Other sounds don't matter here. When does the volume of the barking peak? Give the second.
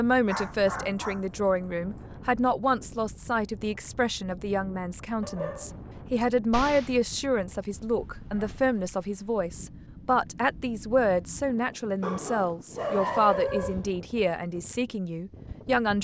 13 s.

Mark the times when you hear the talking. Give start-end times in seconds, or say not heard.
0.0-15.9.